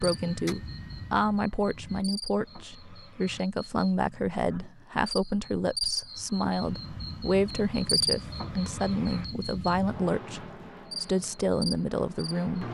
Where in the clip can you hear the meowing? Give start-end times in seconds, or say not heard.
not heard.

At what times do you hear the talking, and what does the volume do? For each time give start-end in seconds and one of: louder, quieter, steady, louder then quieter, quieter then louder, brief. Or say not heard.
0.0-12.6 steady.